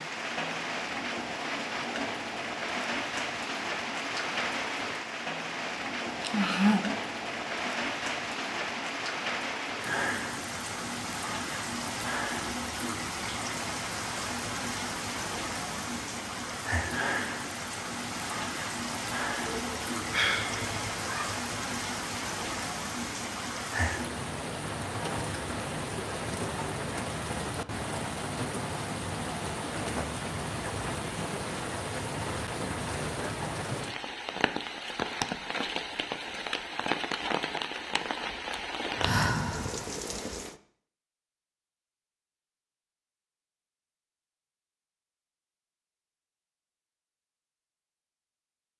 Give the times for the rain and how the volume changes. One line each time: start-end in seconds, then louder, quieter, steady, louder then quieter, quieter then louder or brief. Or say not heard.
0.0-40.5 steady.